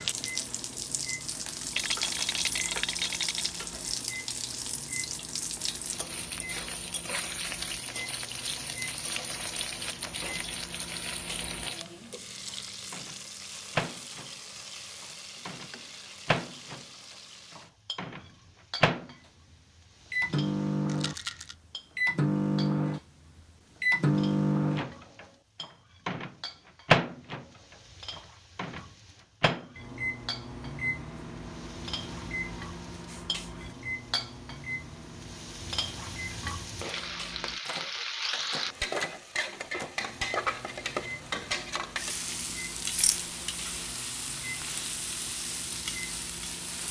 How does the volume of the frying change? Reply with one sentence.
The loudness of the frying goes down, then up.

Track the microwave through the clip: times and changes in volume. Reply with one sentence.
The microwave can be heard from 0.0 to 19.1 s, getting louder; and from 20.1 to 46.8 s, getting quieter.